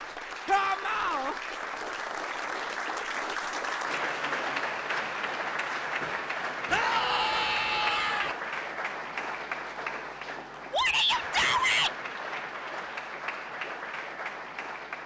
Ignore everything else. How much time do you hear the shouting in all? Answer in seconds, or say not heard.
4 s.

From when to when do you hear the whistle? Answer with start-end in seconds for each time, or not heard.
not heard.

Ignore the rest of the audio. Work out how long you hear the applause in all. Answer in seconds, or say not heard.
15 s.